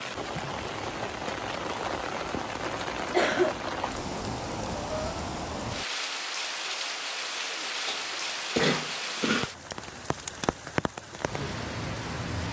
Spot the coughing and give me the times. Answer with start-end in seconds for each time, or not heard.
3.1-3.8, 7.8-9.5.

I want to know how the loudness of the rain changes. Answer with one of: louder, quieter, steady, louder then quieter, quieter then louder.
steady.